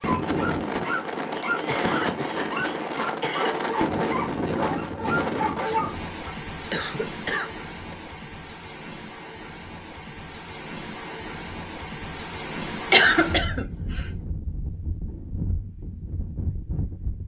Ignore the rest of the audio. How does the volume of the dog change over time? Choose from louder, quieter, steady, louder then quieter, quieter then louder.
steady.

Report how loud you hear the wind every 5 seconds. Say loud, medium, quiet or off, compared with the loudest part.
loud, medium, medium, medium.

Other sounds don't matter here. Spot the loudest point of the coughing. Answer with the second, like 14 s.
13 s.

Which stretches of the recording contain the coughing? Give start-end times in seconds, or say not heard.
1.6-3.6, 6.7-8.0, 12.9-14.1.